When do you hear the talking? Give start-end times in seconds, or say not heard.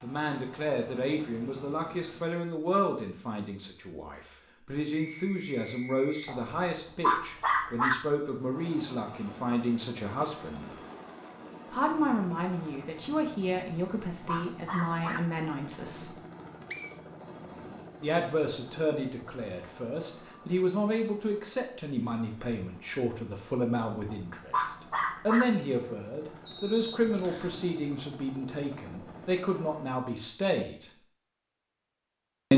0.0-10.7, 11.7-16.1, 18.0-30.9.